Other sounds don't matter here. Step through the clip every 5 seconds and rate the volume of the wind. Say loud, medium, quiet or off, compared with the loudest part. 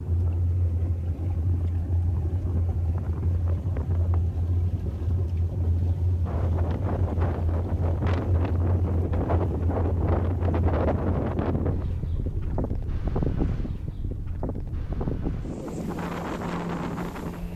off, loud, loud, loud.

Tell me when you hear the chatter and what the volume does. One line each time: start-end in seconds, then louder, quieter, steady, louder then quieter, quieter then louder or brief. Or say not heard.
not heard.